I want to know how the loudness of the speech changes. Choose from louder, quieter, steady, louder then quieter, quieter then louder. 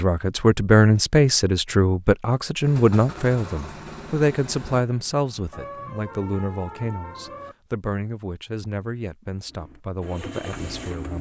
quieter.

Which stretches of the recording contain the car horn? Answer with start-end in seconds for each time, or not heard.
5.5-7.5.